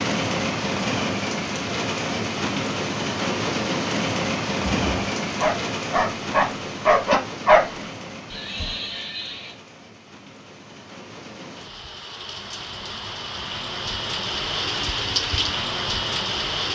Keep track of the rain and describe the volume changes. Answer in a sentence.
The loudness of the rain goes down, then up.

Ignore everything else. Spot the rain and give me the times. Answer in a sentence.
You can hear the rain from 0.0 to 16.7 s.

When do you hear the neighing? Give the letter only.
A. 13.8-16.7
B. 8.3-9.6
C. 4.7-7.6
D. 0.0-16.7
B.